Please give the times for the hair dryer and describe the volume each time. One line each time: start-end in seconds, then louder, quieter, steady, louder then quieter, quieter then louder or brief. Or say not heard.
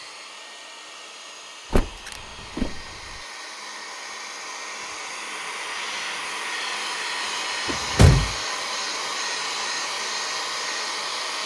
0.0-11.4 louder.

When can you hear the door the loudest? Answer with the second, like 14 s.
8 s.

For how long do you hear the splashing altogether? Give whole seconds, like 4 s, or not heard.
not heard.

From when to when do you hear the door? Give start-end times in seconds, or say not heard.
1.7-3.2, 7.7-8.3.